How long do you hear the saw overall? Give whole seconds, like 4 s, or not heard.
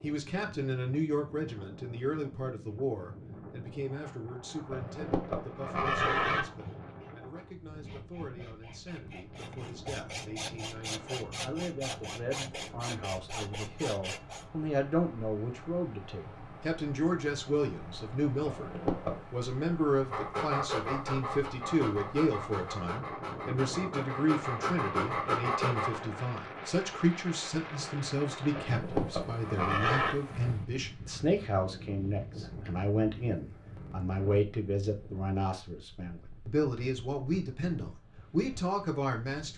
8 s.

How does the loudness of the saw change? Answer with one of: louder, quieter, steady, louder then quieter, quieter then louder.
louder.